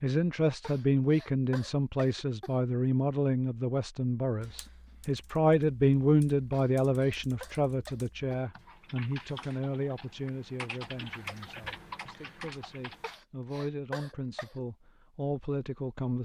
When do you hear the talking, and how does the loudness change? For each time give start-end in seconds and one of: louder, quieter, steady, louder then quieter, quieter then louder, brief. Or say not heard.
0.0-16.2 quieter.